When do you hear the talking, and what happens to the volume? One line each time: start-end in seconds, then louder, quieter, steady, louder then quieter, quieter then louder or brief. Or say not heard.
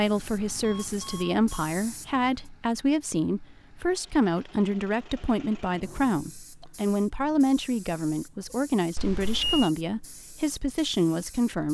0.0-11.6 steady.